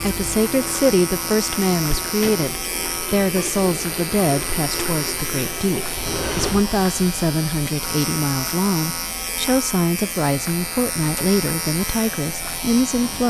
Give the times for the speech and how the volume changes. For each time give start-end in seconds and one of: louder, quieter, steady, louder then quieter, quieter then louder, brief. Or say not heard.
0.0-13.2 steady.